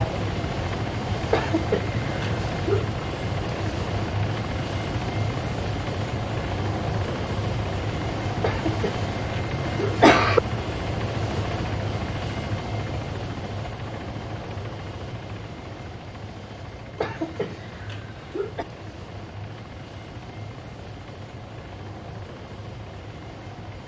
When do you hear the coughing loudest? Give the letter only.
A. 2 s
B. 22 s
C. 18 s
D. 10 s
D.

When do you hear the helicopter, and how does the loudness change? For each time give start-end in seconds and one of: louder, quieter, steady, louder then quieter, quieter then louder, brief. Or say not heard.
0.0-23.8 quieter.